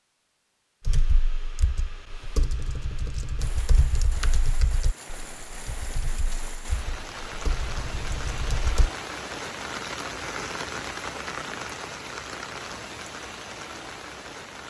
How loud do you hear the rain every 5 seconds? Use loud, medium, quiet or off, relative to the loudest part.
medium, loud, loud.